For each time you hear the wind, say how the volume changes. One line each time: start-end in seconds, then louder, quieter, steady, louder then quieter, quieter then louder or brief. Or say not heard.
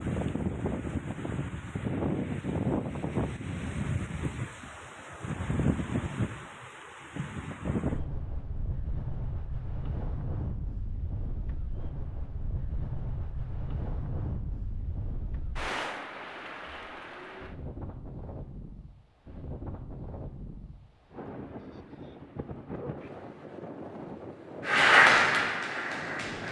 0.0-26.4 quieter.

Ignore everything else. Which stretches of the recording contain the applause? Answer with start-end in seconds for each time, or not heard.
24.6-26.4.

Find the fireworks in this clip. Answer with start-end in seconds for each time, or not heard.
not heard.